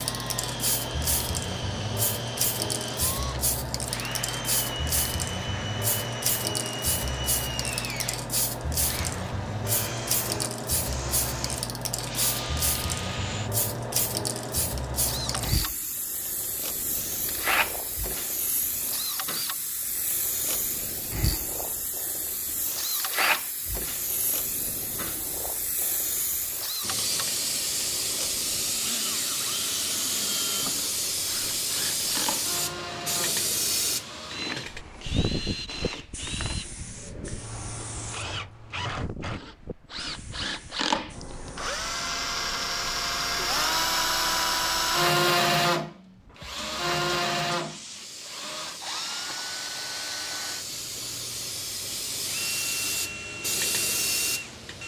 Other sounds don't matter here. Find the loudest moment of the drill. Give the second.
45 s.